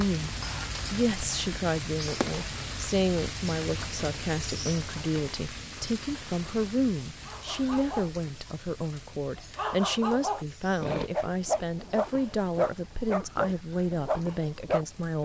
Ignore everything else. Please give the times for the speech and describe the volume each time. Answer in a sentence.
The speech can be heard from 0.0 to 15.2 s, at a steady volume.